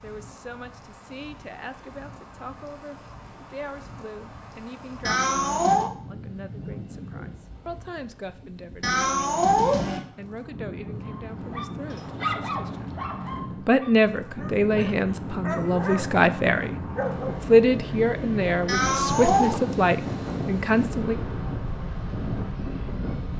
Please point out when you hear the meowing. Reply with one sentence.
The meowing can be heard from 5.0 to 5.9 s, from 8.8 to 10.0 s and from 18.6 to 19.6 s.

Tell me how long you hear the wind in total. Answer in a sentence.
The wind can be heard for 23 seconds in total.